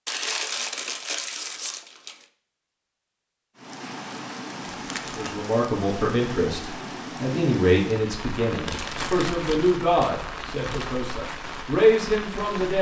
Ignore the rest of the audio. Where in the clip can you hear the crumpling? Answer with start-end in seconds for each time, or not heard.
0.1-2.2, 4.8-5.3, 8.7-10.9.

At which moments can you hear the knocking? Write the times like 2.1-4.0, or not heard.
not heard.